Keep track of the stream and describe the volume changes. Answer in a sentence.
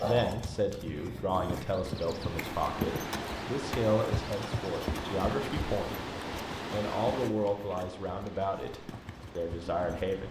The volume of the stream goes down.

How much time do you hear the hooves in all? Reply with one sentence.
You can hear the hooves for 10 seconds altogether.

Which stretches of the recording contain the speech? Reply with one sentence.
You can hear the speech from 0.0 to 6.1 s and from 6.7 to 10.2 s.